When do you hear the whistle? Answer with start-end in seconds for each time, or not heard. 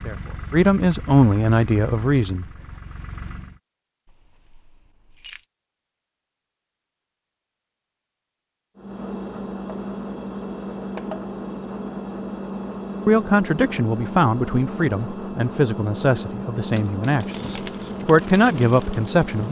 not heard.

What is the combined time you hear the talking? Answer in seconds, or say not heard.
9 s.